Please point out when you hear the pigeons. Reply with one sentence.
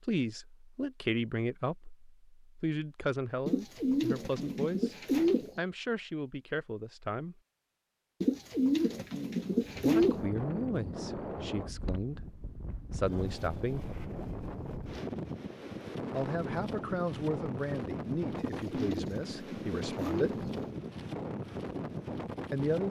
The pigeons can be heard from 3.5 to 5.6 s, from 8.2 to 10.2 s and from 18.4 to 20.8 s.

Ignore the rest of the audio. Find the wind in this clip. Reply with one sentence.
You can hear the wind from 9.4 to 22.8 s.